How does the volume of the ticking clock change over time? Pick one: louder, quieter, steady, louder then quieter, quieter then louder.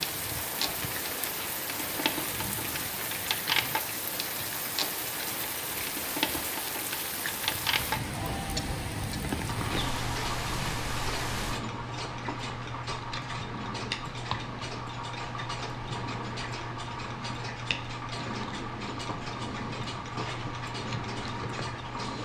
steady.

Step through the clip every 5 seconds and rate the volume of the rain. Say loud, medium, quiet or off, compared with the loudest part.
loud, loud, loud, off, off.